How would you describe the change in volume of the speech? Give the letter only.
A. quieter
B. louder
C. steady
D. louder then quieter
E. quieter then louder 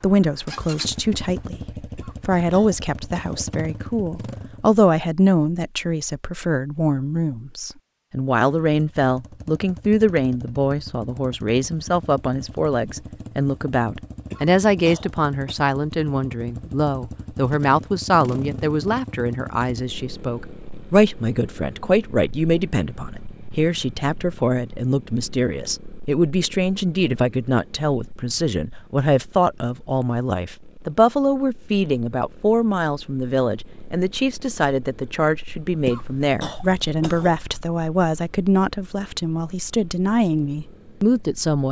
C.